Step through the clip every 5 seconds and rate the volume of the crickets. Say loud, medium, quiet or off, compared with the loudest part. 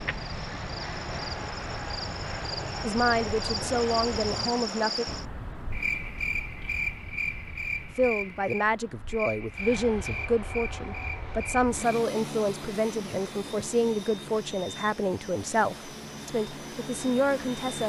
loud, loud, medium, quiet.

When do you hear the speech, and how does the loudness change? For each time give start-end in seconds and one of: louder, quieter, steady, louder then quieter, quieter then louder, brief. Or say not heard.
2.8-5.0 brief
8.0-17.8 steady.